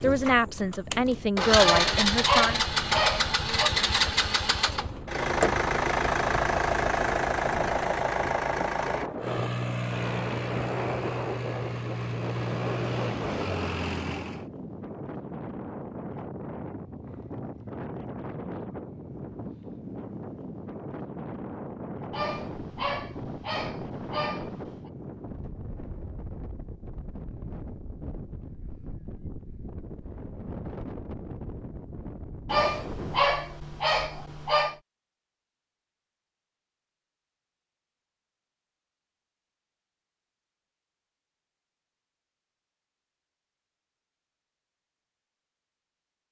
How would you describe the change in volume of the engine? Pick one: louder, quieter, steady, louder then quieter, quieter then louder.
quieter.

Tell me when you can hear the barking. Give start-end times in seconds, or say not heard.
1.6-3.7, 22.1-24.9, 32.5-34.8.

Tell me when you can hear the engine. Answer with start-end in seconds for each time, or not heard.
0.0-14.4.